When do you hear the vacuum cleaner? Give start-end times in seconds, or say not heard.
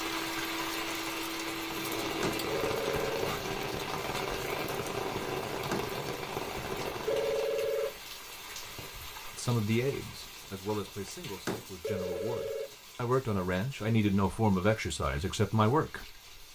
0.0-2.6.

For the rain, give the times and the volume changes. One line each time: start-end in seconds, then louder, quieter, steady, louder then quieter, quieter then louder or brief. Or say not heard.
0.0-16.5 quieter.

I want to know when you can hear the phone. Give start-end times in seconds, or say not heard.
2.5-3.1, 7.0-8.0, 11.8-12.8.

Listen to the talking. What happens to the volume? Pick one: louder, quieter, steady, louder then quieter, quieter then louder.
quieter then louder.